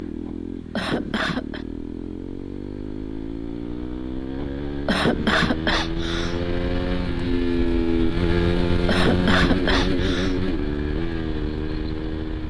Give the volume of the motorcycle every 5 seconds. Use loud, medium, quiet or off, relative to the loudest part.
medium, loud, loud.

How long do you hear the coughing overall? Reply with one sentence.
You can hear the coughing for 5 seconds altogether.